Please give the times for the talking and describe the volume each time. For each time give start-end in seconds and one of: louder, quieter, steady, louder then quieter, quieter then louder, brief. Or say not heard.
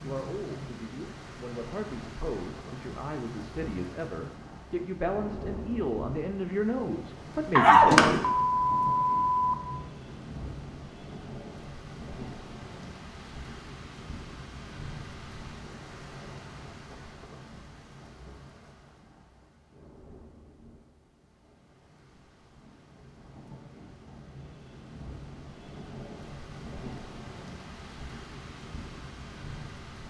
0.0-8.3 louder.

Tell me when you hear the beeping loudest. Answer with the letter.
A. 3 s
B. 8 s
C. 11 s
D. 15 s
B.